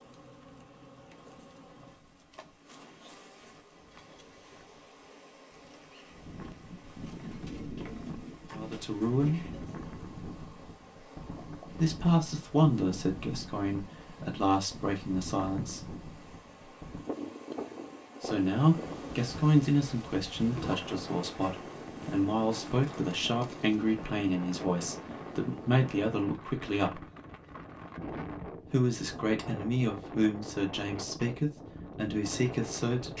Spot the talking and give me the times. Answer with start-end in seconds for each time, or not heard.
8.5-9.5, 11.7-15.8, 18.2-27.1, 28.7-33.1.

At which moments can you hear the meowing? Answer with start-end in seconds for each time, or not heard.
not heard.